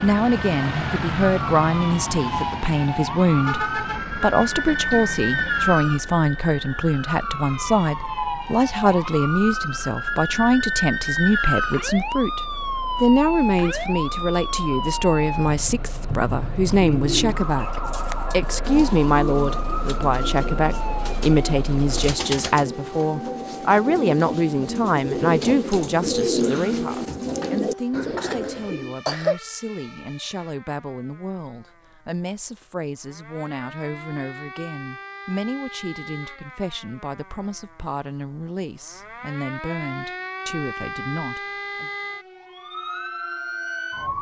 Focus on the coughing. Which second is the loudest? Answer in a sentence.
The volume of the coughing peaks at 29 seconds.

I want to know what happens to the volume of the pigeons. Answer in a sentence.
The volume of the pigeons goes up.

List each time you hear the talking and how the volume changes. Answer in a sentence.
The talking can be heard from 0.0 to 12.4 s, at a steady volume; and from 13.0 to 41.9 s, getting quieter.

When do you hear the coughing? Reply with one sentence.
You can hear the coughing from 27.4 to 29.4 s.